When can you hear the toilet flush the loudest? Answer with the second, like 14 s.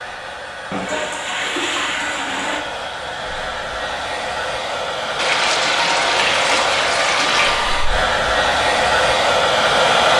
6 s.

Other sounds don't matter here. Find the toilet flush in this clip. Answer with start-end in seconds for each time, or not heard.
0.7-2.6, 5.2-7.6.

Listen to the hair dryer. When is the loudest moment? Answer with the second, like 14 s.
10 s.